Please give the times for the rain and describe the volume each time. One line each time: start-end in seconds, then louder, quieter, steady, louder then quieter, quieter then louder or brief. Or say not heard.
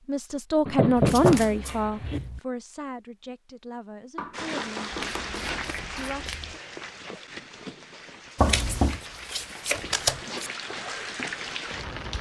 4.3-12.1 quieter then louder.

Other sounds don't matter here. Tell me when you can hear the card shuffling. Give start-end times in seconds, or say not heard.
0.9-2.4, 4.9-6.6, 8.4-10.5.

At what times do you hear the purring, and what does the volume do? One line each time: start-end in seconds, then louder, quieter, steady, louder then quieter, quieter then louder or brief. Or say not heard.
not heard.